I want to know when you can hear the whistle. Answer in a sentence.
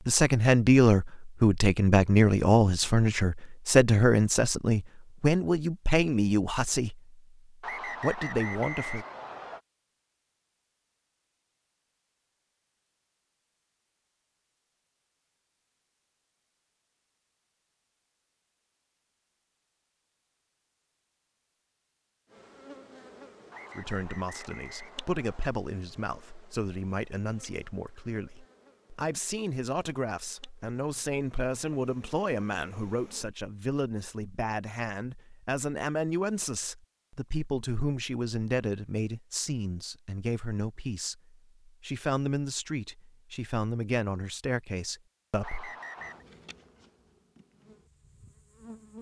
You can hear the whistle from 7.6 to 9.6 s, from 23.5 to 25.6 s and from 45.4 to 46.2 s.